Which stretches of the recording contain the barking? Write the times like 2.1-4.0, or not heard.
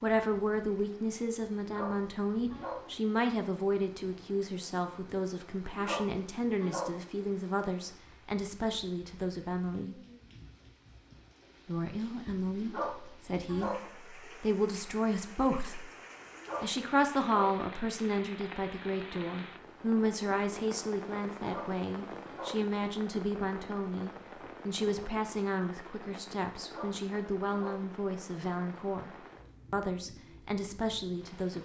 1.6-2.9, 5.7-7.0, 12.6-13.9, 16.4-17.6, 21.4-22.6, 26.6-27.9.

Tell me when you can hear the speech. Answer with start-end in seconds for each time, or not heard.
0.0-10.0, 11.7-15.9, 16.6-29.1, 29.7-31.6.